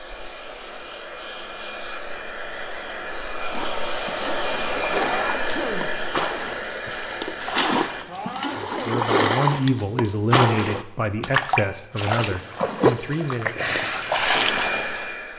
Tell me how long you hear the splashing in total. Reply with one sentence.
The splashing can be heard for 12 seconds in total.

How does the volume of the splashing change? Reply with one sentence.
The volume of the splashing goes up.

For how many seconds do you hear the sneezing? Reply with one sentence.
You can hear the sneezing for 2 seconds altogether.